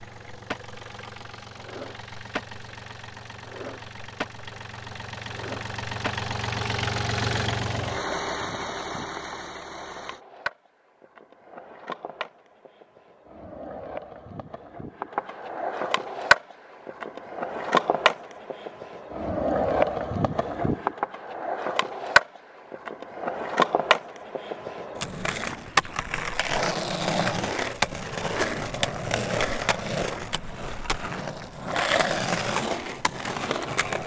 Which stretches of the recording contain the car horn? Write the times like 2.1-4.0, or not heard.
not heard.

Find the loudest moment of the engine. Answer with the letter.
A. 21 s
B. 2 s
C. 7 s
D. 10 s
C.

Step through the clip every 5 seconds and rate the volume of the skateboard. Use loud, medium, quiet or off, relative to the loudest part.
quiet, quiet, quiet, loud, loud, loud, loud.